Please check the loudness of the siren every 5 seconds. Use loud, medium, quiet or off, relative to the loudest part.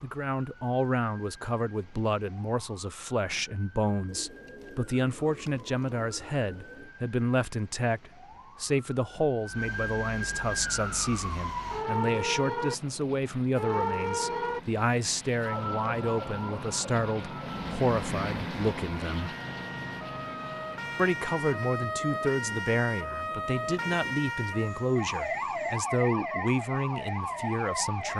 quiet, quiet, loud, medium, loud, loud.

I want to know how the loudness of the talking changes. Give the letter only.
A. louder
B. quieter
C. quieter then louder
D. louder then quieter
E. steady
E.